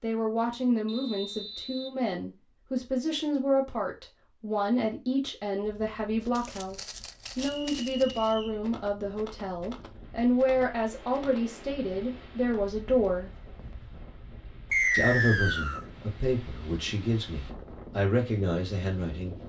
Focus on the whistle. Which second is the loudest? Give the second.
15 s.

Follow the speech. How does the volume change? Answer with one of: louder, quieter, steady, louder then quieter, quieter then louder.
steady.